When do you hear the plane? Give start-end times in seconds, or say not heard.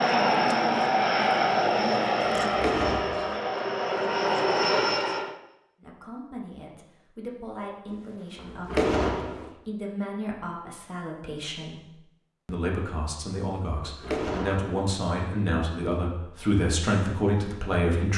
0.0-5.3.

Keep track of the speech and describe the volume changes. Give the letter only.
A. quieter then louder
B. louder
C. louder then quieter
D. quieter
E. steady
B.